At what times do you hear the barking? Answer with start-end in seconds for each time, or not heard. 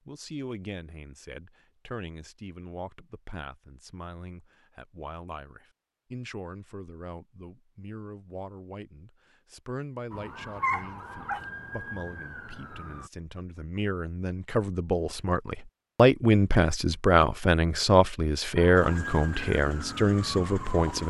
10.6-11.4.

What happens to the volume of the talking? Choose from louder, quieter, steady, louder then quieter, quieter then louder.
louder.